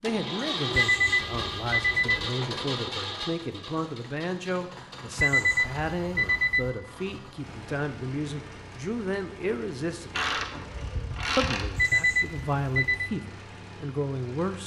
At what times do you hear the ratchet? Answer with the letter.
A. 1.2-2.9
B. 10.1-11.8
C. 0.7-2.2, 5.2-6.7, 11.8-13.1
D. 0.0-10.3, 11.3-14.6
B.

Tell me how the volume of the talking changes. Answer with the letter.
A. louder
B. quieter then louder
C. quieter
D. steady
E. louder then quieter
D.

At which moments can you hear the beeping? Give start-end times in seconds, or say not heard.
0.7-2.2, 5.2-6.7, 11.8-13.1.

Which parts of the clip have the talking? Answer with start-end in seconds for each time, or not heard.
0.0-10.3, 11.3-14.6.